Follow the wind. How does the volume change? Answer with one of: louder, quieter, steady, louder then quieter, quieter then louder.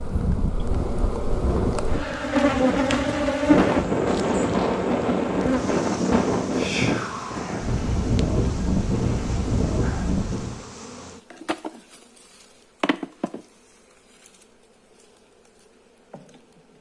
louder.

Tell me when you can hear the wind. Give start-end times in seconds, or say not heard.
0.0-10.6.